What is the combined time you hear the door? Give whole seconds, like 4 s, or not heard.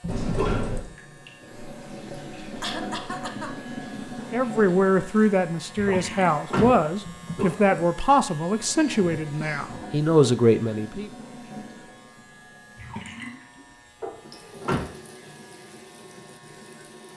4 s.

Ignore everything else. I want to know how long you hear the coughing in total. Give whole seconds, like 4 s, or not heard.
2 s.